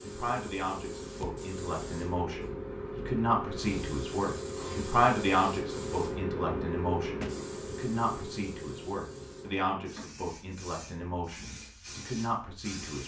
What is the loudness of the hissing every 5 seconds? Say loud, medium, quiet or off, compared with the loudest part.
loud, loud, medium.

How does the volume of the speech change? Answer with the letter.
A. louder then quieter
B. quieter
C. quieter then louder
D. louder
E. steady
A.